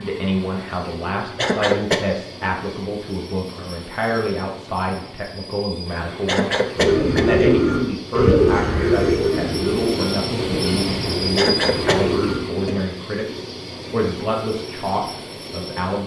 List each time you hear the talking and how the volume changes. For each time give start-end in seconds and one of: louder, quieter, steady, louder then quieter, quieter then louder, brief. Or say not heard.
0.0-16.0 steady.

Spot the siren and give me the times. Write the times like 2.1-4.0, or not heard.
not heard.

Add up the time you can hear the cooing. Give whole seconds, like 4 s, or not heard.
6 s.